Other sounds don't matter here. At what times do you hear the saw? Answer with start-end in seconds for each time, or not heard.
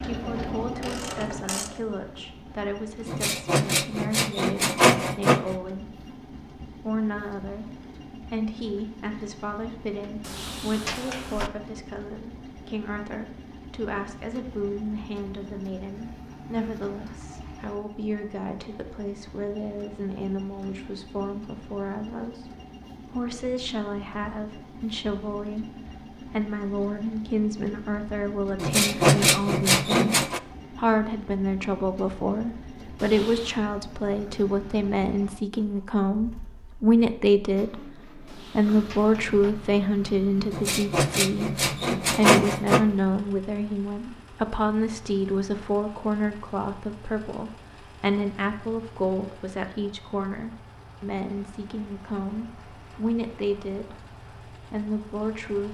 3.0-5.5, 28.6-30.4, 40.5-42.9.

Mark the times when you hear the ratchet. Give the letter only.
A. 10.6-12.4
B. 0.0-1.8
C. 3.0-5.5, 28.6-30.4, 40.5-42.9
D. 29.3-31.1
B.